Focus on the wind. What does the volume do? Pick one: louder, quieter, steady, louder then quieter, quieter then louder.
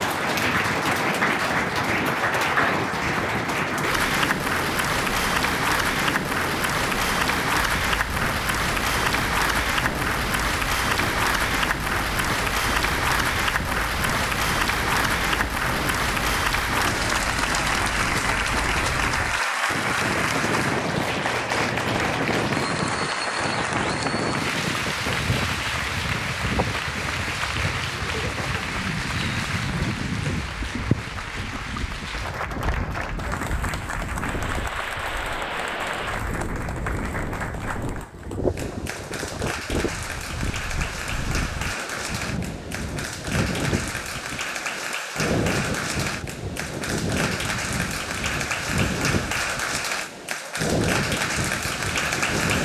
steady.